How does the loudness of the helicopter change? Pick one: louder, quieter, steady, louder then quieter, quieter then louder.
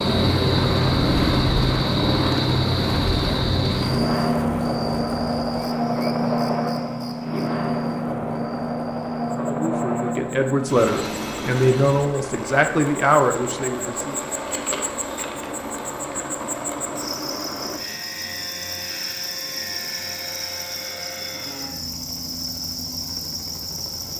quieter.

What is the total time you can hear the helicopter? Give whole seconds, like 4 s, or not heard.
24 s.